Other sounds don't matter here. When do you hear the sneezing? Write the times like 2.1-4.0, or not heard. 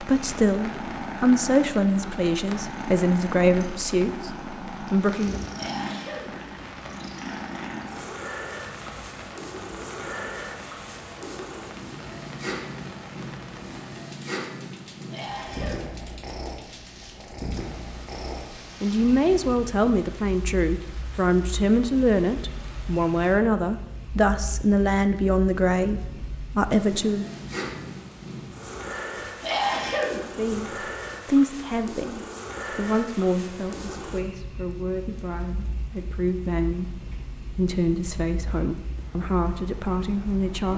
5.5-6.3, 15.1-15.9, 29.4-30.2.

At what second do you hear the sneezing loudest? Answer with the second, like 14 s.
30 s.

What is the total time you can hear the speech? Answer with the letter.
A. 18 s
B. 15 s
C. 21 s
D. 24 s
D.